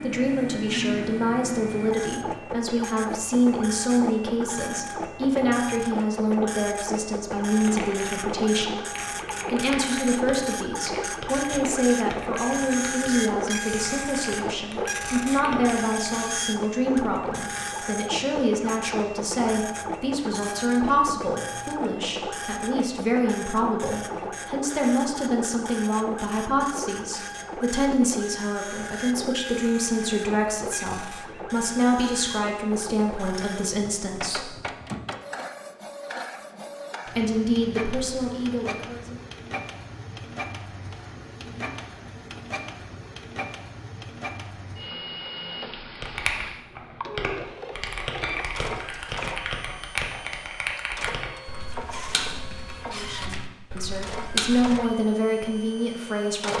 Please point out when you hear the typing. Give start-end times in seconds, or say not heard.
7.5-16.4, 46.0-54.9.